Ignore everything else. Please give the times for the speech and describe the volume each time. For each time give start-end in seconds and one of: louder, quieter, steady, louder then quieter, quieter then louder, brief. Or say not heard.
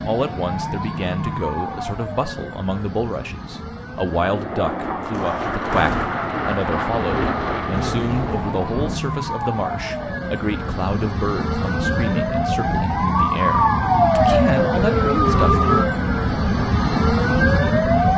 0.0-15.6 steady.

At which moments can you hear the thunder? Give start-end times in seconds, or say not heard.
5.1-9.1.